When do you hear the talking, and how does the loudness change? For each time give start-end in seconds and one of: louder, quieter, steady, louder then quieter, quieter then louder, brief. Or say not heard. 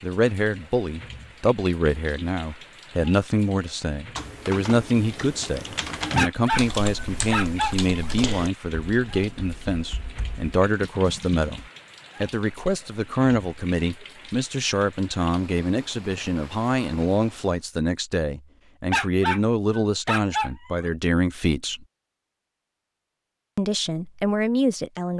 0.0-11.6 steady
12.2-21.9 steady
23.6-25.1 brief.